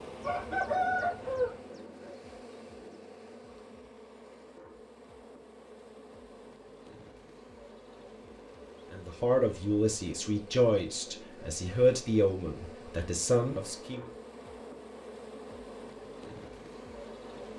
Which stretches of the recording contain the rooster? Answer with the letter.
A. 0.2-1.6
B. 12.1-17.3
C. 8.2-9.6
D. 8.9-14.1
A.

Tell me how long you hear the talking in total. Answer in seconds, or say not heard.
5 s.